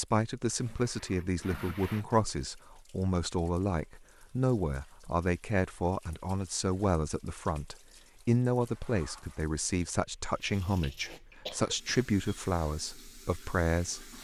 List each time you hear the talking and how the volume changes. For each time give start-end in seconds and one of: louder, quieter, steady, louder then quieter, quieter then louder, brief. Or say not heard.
0.0-14.1 steady.